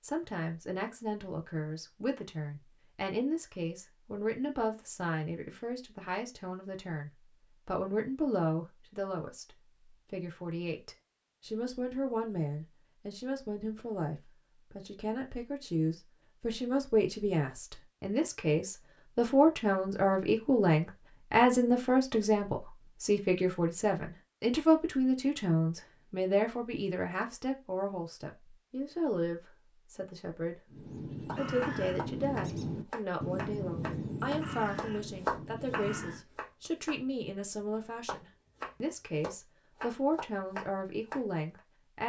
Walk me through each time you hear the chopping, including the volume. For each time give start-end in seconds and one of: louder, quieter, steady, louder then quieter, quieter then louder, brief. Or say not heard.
31.2-41.6 louder then quieter.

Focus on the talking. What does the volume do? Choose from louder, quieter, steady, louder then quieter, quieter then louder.
louder then quieter.